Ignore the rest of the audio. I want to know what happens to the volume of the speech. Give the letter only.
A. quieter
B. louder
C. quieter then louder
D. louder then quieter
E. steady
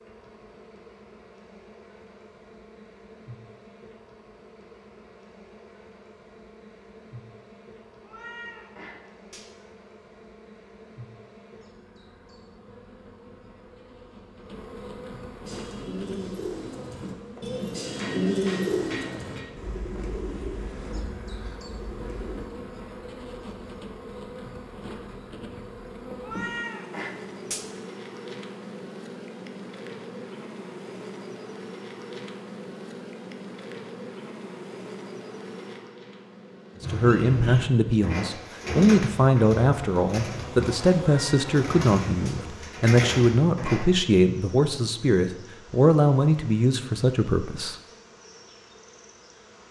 E.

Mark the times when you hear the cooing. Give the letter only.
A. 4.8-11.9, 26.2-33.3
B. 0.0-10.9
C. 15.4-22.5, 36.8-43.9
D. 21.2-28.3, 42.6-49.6
C.